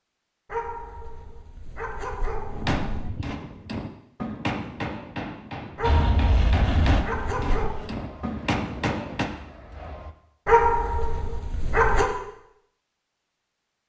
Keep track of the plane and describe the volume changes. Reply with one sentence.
The volume of the plane goes down.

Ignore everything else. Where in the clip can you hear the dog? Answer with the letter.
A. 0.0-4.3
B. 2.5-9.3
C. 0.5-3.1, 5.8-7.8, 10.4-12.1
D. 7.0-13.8
C.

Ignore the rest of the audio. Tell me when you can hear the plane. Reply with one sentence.
You can hear the plane from 5.8 to 10.2 s.